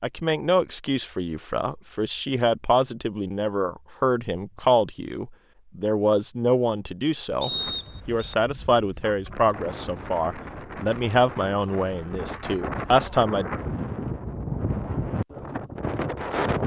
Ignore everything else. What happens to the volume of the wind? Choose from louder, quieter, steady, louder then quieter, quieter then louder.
louder.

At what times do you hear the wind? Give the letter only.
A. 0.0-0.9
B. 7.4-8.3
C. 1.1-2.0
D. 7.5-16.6
D.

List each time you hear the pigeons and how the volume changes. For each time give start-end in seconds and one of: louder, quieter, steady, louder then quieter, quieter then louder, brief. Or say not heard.
not heard.